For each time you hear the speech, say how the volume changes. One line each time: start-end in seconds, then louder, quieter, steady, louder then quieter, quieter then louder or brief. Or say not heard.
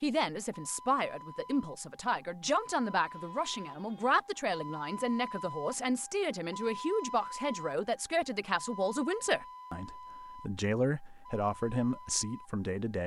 0.0-13.0 steady.